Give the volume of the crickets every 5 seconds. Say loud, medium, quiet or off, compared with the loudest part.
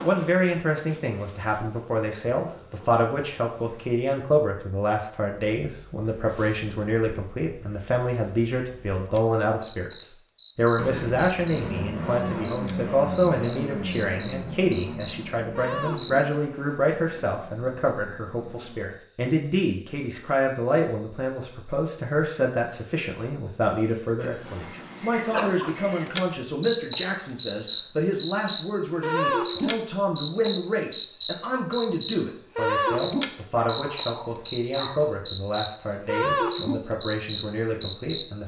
quiet, quiet, quiet, medium, medium, loud, loud, loud.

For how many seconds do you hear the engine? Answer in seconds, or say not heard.
8 s.